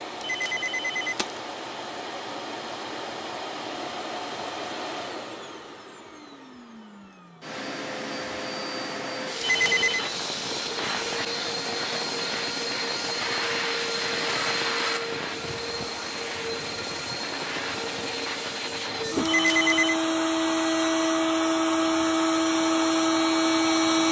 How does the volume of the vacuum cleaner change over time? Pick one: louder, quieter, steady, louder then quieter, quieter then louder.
louder.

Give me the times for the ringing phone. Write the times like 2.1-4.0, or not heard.
0.2-1.4, 9.4-10.1, 19.2-19.9.